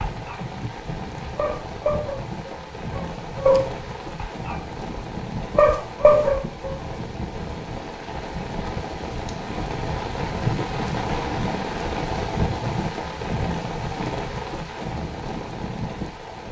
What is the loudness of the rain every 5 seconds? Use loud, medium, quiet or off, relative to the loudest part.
medium, medium, loud, medium.